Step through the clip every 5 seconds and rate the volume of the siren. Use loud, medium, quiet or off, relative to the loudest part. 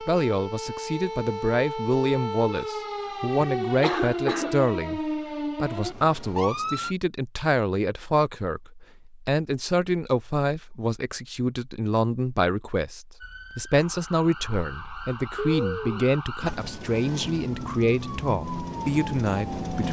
loud, loud, medium, loud.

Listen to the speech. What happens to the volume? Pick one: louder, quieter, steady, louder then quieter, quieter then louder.
steady.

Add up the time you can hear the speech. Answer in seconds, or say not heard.
20 s.